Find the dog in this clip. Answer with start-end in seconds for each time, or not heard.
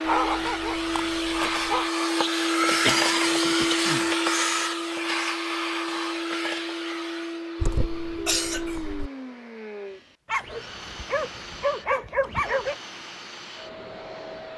0.1-1.9, 10.2-12.8.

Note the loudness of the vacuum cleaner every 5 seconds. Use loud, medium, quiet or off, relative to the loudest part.
loud, medium, quiet.